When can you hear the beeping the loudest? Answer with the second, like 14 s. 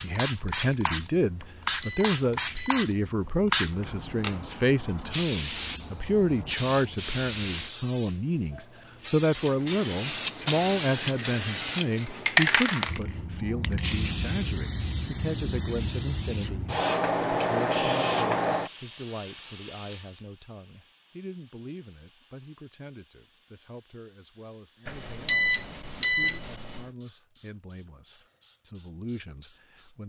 26 s.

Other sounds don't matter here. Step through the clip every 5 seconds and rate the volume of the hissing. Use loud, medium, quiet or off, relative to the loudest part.
loud, loud, loud, loud, quiet, quiet.